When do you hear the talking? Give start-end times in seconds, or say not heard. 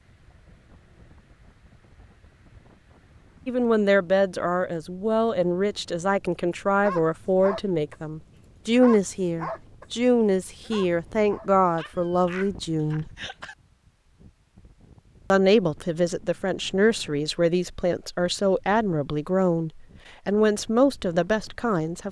3.5-13.1, 15.3-22.0.